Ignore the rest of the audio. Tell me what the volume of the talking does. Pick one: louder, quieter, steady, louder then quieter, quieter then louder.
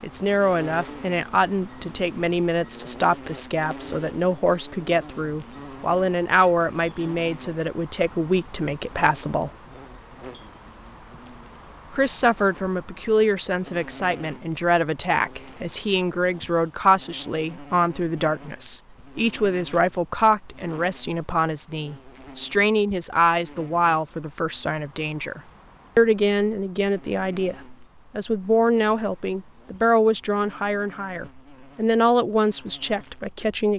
steady.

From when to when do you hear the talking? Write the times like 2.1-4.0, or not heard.
0.0-9.5, 11.9-33.7.